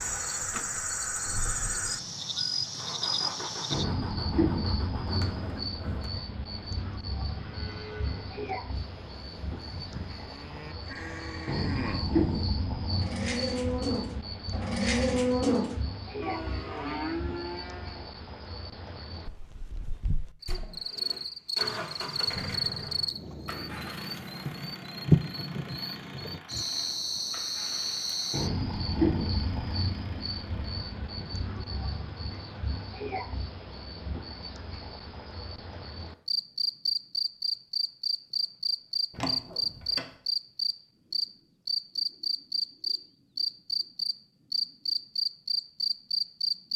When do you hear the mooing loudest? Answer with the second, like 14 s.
15 s.